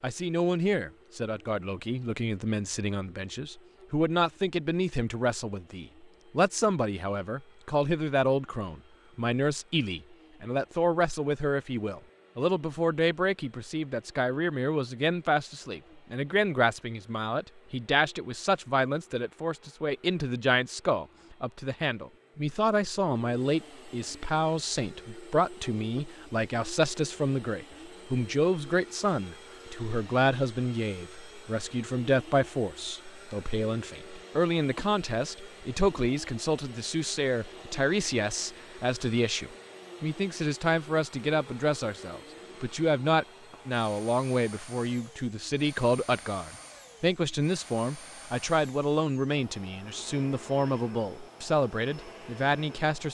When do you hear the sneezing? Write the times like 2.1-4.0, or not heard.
not heard.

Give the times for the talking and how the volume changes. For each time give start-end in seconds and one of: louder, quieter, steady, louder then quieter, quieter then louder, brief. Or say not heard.
0.0-53.1 steady.